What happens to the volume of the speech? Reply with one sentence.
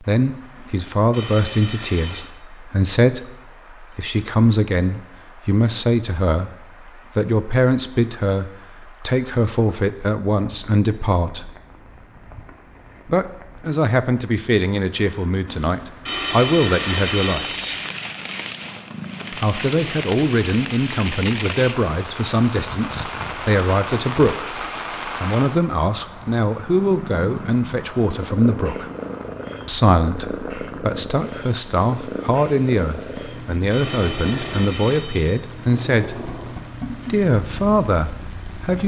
The loudness of the speech stays about the same.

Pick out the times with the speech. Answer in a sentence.
You can hear the speech from 0.0 to 11.6 s, from 13.1 to 17.4 s, from 19.3 to 28.9 s and from 29.6 to 38.8 s.